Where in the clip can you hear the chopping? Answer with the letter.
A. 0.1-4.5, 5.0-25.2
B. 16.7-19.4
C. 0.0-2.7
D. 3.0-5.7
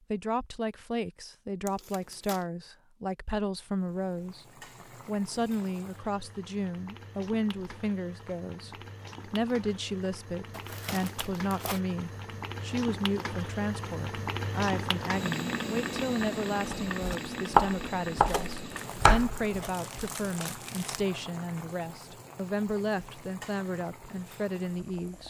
B.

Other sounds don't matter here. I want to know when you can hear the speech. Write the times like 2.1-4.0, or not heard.
0.1-4.5, 5.0-25.2.